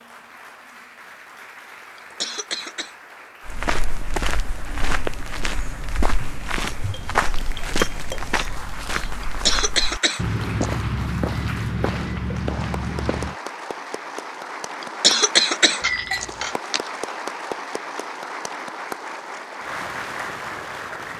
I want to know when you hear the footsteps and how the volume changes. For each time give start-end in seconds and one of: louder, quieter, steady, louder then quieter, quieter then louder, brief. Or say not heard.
3.5-13.3 steady.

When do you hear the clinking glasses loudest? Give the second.
16 s.